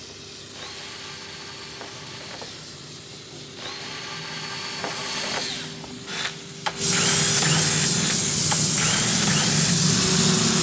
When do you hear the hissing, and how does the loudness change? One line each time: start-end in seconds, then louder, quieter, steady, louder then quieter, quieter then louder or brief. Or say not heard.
0.0-10.5 louder.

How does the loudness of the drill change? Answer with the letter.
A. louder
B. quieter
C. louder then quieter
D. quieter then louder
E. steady
A.